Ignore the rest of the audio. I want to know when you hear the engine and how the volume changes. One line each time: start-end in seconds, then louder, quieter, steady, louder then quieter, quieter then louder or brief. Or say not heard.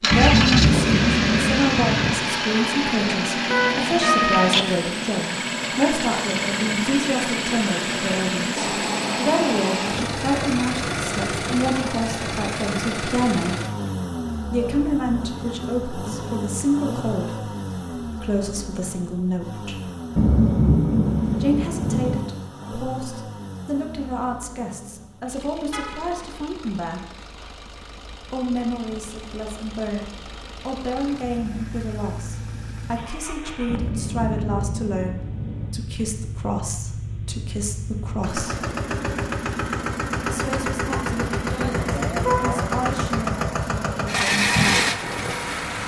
0.0-45.8 quieter then louder.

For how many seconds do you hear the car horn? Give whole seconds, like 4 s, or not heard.
2 s.